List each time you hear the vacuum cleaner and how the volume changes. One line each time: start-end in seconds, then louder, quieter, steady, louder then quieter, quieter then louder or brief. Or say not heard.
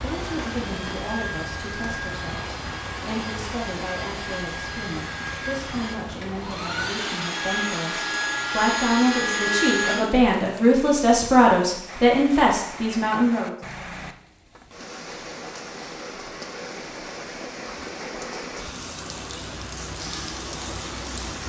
0.0-10.1 louder.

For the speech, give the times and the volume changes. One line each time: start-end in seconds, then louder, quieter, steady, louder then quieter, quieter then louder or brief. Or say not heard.
0.0-13.6 louder.